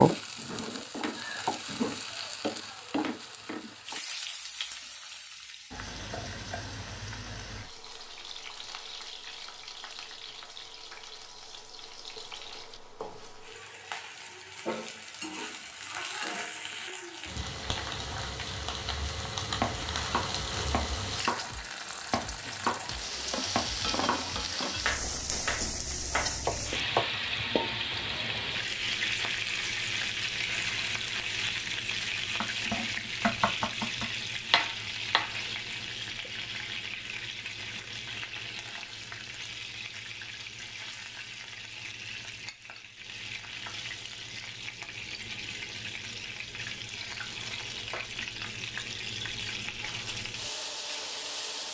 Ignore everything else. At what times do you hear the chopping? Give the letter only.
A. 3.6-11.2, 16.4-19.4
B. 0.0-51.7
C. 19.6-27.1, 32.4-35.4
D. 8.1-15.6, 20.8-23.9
C.